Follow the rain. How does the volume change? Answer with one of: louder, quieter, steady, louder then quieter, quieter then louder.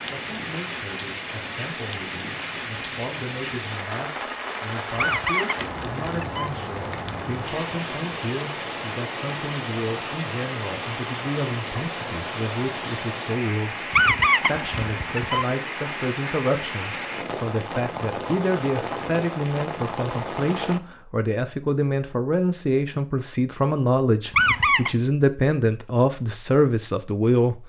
steady.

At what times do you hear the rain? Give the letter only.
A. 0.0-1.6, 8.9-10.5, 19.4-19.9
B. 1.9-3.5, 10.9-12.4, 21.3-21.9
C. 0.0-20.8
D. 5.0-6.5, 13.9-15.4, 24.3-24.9
C.